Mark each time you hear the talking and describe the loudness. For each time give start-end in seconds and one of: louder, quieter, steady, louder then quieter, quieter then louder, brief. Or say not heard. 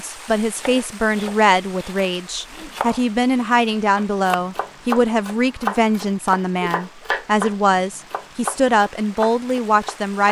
0.0-10.2 steady.